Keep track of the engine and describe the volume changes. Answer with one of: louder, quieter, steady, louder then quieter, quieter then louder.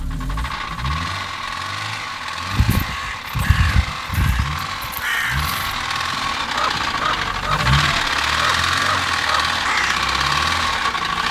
louder.